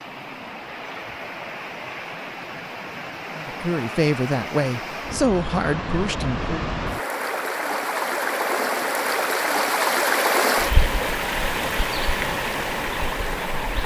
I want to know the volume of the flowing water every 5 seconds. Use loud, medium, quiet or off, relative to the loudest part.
medium, loud, loud.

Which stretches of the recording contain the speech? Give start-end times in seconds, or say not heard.
3.4-6.7.